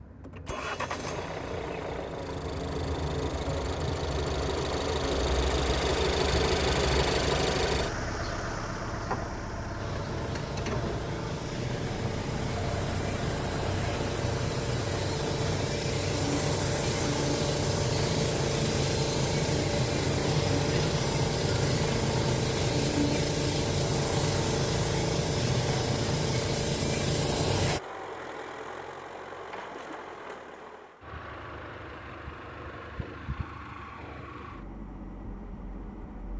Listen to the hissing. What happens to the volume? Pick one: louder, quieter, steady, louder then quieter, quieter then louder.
louder.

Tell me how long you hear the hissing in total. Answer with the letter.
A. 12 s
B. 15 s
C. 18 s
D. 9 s
C.